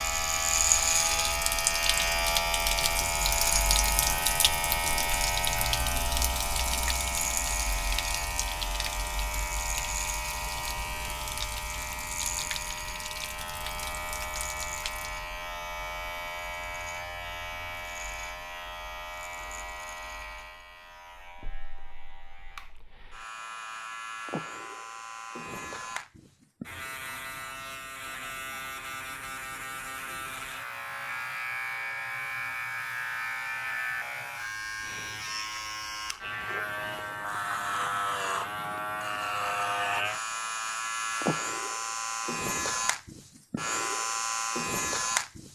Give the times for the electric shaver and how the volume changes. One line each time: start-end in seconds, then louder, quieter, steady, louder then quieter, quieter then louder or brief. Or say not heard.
0.0-45.4 quieter then louder.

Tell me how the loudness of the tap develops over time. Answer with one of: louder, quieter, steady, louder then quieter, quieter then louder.
quieter.